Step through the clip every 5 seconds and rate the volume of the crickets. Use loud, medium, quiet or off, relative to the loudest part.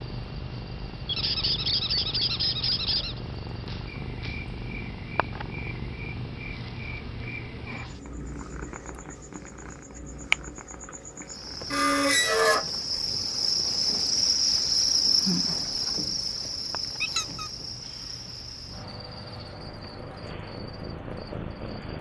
quiet, quiet, loud, loud, quiet.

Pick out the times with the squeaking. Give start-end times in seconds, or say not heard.
1.1-3.2, 11.7-12.7, 17.0-17.5.